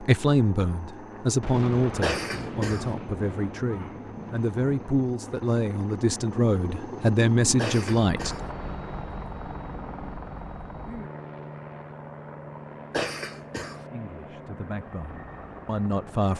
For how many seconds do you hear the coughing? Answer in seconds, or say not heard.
3 s.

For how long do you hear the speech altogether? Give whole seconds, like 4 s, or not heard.
11 s.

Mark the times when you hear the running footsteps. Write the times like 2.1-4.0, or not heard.
not heard.